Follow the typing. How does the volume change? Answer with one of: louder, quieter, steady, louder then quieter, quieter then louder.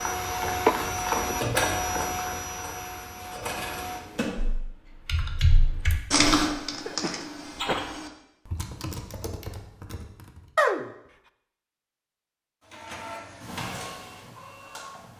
louder then quieter.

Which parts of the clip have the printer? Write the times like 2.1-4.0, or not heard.
0.0-4.3, 12.6-15.1.